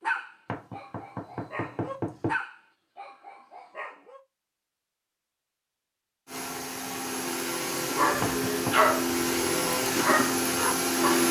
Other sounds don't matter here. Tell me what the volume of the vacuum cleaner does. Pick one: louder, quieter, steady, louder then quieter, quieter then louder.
louder.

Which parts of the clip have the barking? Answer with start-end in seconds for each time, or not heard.
0.0-4.2, 7.9-11.2.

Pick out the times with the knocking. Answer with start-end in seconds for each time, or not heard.
0.5-2.4, 8.2-8.9.